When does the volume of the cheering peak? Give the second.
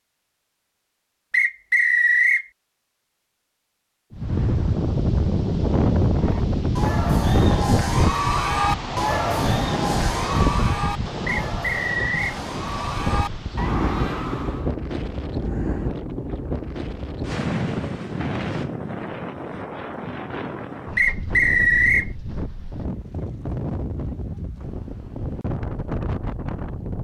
9 s.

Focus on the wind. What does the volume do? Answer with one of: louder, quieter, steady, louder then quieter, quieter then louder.
quieter.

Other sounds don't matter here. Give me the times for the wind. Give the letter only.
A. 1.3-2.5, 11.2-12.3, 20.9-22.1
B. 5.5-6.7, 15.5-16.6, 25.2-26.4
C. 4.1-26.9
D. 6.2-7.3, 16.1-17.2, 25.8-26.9
C.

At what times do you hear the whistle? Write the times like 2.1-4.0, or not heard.
1.3-2.5, 11.2-12.3, 20.9-22.1.